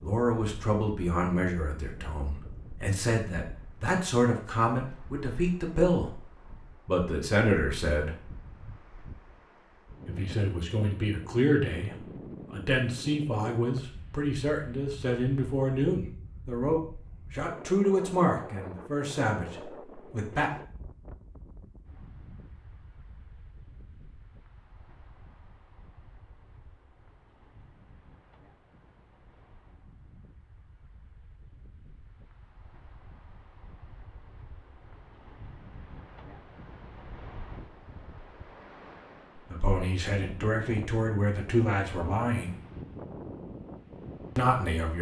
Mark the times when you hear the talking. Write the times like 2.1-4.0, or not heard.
0.0-6.1, 6.8-8.2, 10.1-20.5, 39.4-42.5, 44.4-44.9.